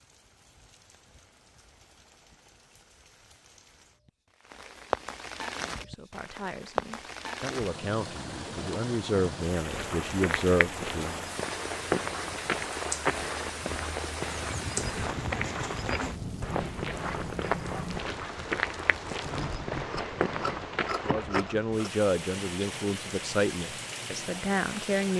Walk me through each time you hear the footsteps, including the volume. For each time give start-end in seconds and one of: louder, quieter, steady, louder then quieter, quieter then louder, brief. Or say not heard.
9.6-21.6 steady.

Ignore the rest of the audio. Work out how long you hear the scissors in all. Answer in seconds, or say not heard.
2 s.